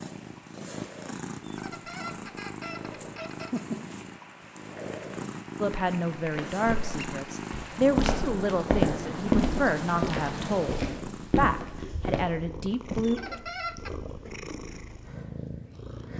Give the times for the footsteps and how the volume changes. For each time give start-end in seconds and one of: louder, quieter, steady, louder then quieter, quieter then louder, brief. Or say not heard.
6.2-12.2 louder then quieter.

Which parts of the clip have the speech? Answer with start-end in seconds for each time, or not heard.
5.6-13.2.